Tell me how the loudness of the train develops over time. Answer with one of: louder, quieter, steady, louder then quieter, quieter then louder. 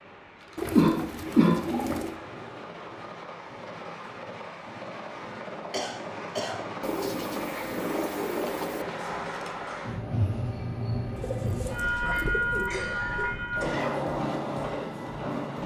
louder.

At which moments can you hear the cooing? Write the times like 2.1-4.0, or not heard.
0.6-2.2, 6.8-8.8, 11.2-12.8.